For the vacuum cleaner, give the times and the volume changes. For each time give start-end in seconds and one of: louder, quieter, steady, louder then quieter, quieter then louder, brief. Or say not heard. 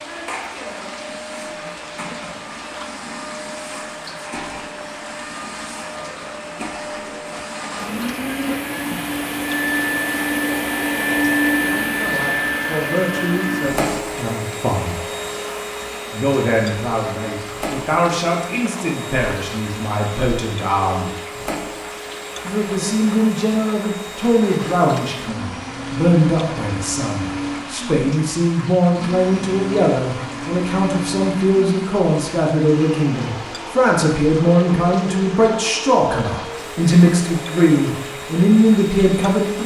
0.0-39.6 louder then quieter.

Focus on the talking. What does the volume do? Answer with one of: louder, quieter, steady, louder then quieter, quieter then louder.
louder.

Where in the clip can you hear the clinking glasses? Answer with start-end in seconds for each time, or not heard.
not heard.